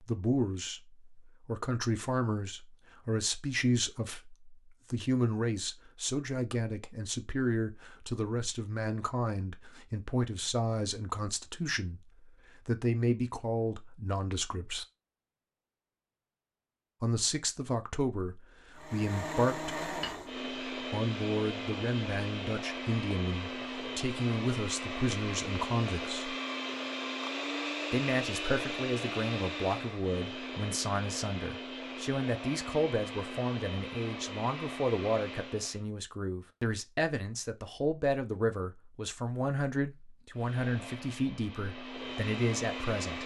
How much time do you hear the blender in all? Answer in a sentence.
You can hear the blender for 20 seconds altogether.